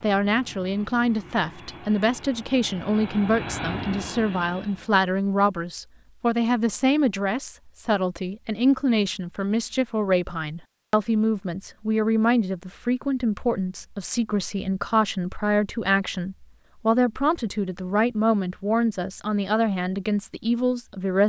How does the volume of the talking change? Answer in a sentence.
The loudness of the talking stays about the same.